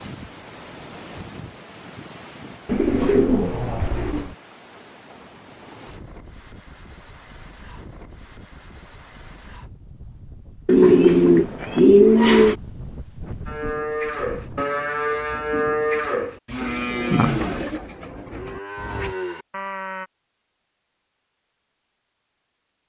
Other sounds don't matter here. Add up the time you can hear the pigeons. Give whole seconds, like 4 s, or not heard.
6 s.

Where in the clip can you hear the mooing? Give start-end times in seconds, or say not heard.
13.4-20.1.